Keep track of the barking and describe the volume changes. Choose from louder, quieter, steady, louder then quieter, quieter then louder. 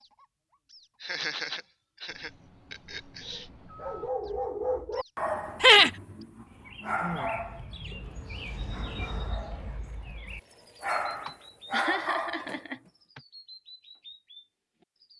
quieter then louder.